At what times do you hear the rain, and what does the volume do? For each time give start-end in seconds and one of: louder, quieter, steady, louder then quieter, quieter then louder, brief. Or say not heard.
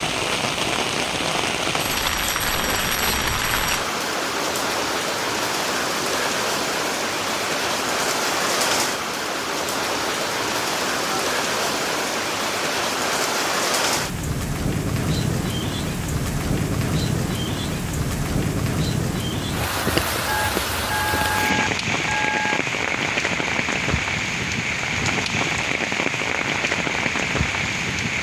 0.0-28.1 steady.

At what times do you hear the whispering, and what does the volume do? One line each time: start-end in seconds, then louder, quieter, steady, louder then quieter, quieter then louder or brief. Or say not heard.
not heard.